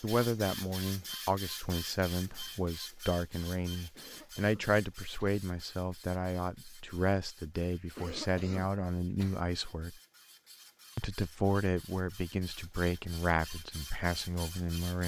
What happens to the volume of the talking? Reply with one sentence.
The volume of the talking stays about the same.